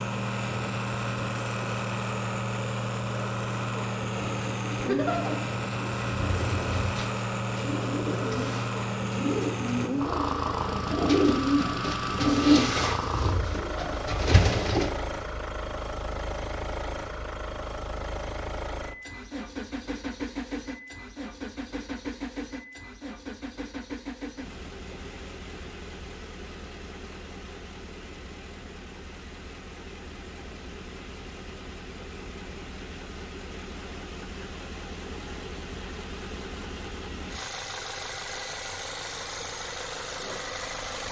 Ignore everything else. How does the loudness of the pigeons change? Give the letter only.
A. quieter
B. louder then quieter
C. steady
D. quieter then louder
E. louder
E.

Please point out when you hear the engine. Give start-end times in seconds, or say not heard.
0.0-41.0.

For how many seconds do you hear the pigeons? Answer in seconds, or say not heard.
11 s.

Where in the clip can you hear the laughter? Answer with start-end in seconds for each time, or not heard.
4.8-5.2.